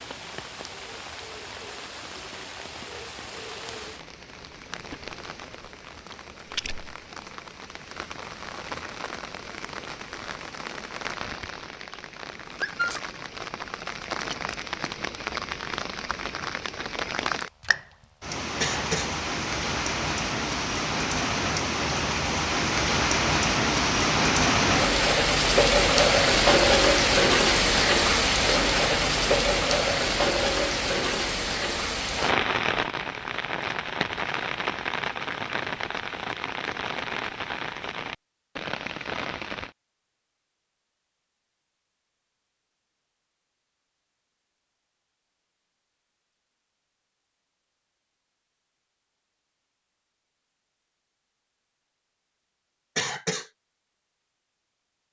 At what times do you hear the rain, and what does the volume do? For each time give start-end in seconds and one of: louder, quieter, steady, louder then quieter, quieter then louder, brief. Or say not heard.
0.0-39.8 louder then quieter.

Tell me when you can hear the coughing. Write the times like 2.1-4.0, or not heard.
18.6-19.1, 53.0-53.5.